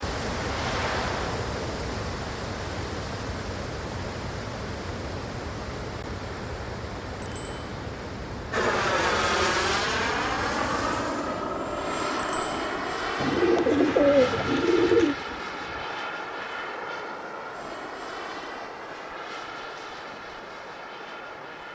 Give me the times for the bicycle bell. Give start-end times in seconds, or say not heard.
7.2-7.7, 12.2-12.7.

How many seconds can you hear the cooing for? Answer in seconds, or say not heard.
2 s.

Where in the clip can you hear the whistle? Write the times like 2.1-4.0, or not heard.
not heard.